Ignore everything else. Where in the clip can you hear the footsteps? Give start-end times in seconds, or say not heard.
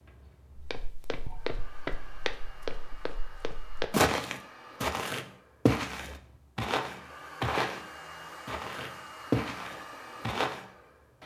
0.6-7.8, 8.4-10.7.